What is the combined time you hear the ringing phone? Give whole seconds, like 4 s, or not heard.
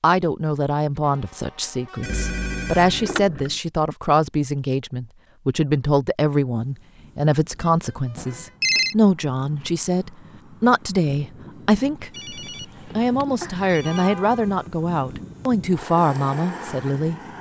4 s.